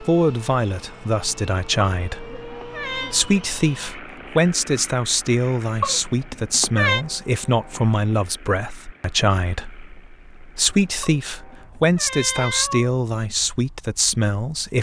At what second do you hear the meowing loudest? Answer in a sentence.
The volume of the meowing peaks at 7 seconds.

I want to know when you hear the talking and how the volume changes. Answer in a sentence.
The talking can be heard from 0.0 to 14.7 s, at a steady volume.